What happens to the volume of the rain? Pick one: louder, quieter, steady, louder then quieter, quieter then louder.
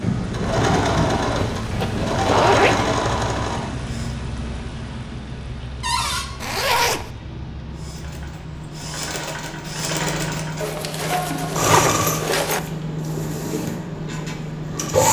quieter then louder.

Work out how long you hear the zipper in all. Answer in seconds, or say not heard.
4 s.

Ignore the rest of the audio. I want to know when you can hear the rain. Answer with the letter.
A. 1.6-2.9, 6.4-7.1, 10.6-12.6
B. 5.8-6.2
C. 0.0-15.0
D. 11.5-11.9
C.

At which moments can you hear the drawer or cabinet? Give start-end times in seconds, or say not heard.
5.8-6.2.